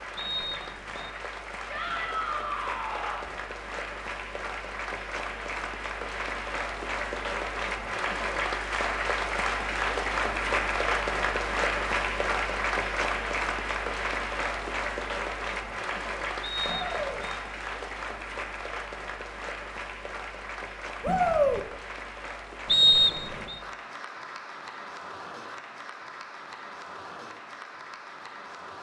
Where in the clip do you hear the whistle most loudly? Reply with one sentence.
The volume of the whistle peaks at 23 seconds.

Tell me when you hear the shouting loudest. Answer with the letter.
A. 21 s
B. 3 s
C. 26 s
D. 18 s
A.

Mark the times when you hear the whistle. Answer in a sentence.
The whistle can be heard from 0.1 to 1.1 s, from 16.4 to 17.4 s and from 22.6 to 23.6 s.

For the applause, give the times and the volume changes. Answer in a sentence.
You can hear the applause from 0.0 to 28.7 s, getting louder then quieter.